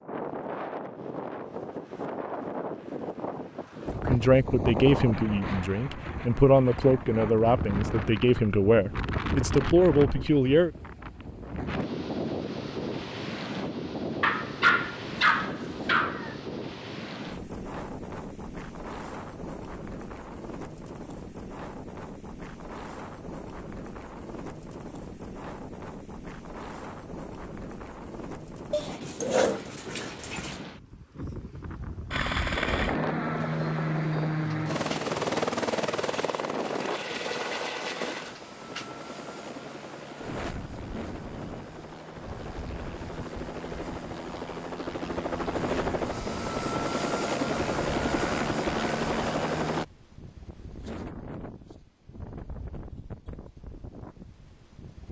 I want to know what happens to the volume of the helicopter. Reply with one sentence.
The volume of the helicopter goes down, then up.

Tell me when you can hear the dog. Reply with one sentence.
You can hear the dog from 14.2 to 16.4 s and from 28.7 to 30.6 s.